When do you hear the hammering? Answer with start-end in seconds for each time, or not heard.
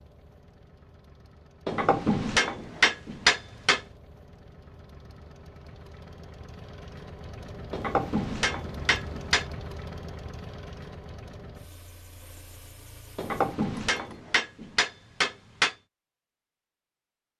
1.6-3.8, 7.7-9.4, 13.2-15.8.